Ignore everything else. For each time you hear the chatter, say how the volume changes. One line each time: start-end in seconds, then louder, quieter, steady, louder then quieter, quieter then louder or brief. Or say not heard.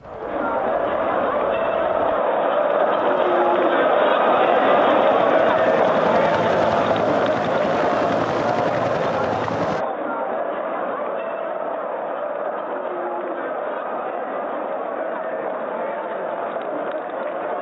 0.0-17.5 quieter.